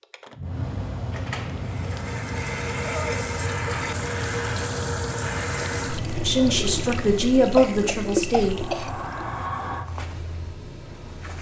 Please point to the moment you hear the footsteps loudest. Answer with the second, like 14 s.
10 s.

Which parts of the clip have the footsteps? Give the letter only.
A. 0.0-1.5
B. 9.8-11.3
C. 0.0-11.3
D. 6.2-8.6
B.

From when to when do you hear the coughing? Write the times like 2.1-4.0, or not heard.
7.5-8.9.